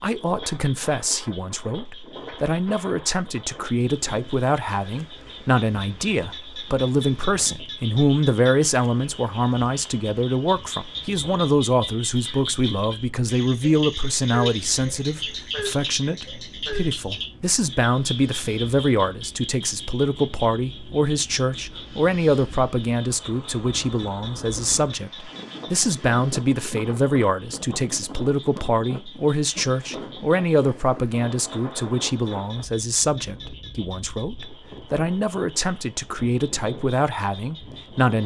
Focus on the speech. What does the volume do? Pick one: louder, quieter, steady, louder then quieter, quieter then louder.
steady.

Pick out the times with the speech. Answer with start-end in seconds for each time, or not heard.
0.0-38.2.